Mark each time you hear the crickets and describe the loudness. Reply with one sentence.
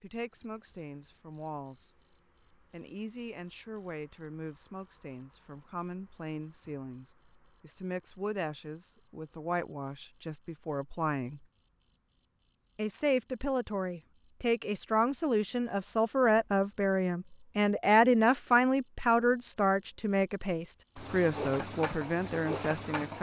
You can hear the crickets from 0.0 to 23.1 s, at a steady volume.